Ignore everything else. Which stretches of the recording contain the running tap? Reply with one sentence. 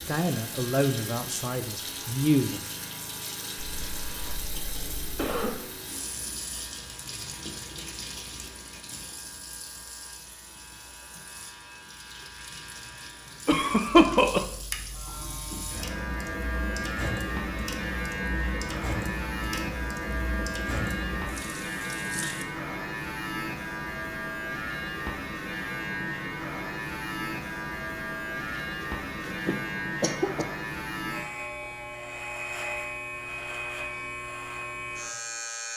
The running tap can be heard from 0.0 to 22.4 s.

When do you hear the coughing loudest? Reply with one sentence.
The loudest moment of the coughing is at 14 seconds.